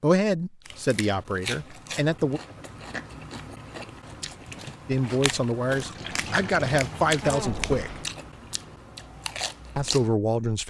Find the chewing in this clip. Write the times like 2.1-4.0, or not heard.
0.7-10.1.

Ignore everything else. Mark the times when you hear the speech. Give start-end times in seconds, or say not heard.
0.0-2.4, 4.8-8.0, 9.8-10.6.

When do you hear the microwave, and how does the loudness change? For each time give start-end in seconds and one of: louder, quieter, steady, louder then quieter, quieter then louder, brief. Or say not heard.
not heard.